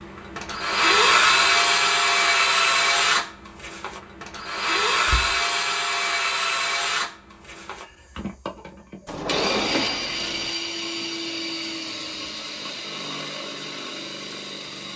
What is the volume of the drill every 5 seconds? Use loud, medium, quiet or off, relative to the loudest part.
loud, medium, medium.